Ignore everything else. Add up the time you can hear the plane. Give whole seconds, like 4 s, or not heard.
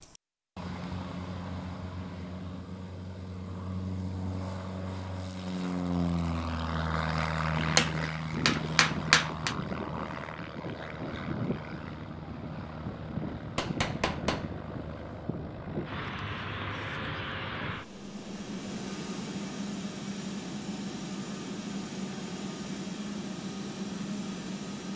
25 s.